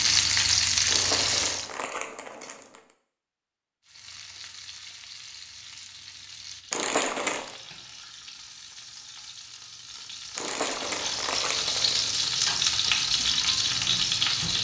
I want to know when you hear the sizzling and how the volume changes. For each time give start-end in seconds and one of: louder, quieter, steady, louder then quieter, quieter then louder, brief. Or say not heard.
0.0-1.7 brief
3.9-14.5 louder.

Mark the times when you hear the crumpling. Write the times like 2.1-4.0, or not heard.
0.8-2.8, 6.7-7.6, 10.3-12.4.